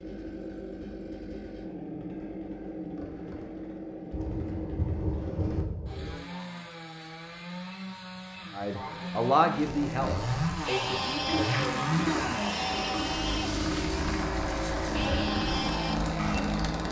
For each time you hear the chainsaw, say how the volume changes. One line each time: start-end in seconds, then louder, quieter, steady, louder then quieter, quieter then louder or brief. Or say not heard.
0.0-16.8 louder.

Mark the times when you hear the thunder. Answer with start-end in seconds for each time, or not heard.
4.1-6.2.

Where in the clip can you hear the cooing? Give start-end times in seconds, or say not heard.
11.2-12.8.